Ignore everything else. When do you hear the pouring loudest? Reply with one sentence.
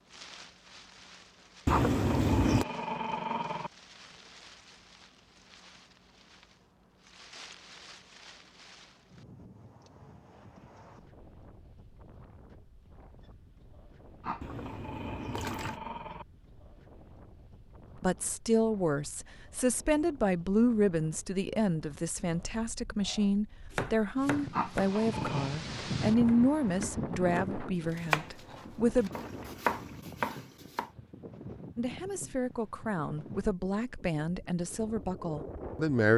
The loudest moment of the pouring is at 2 seconds.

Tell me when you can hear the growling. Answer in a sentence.
The growling can be heard from 1.6 to 3.7 s, from 14.2 to 16.2 s and from 24.5 to 25.6 s.